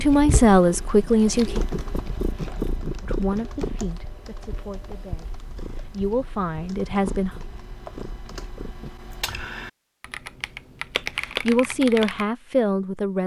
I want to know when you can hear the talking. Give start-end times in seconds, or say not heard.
0.0-1.6, 3.0-7.3, 11.2-13.2.